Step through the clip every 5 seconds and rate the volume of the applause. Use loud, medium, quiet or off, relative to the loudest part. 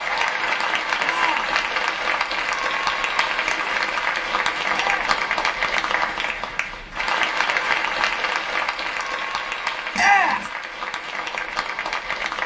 loud, loud, medium.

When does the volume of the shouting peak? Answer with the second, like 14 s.
10 s.